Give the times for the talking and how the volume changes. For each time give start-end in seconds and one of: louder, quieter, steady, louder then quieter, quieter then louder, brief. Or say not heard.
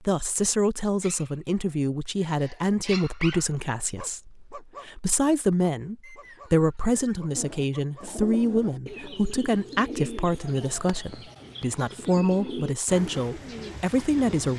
0.1-14.5 steady.